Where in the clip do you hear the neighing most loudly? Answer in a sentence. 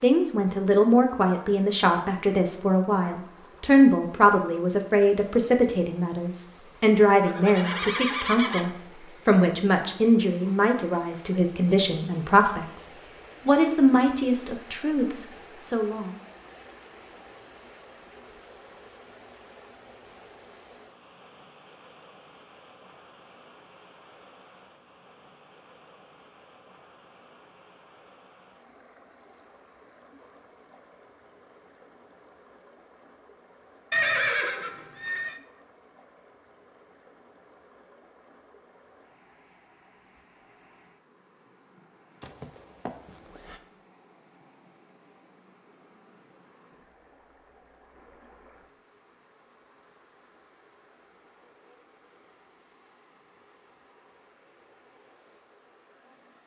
The volume of the neighing peaks at 34 seconds.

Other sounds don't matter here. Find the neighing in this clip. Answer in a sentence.
The neighing can be heard from 7.2 to 8.7 s, from 33.9 to 35.4 s and from 42.2 to 43.6 s.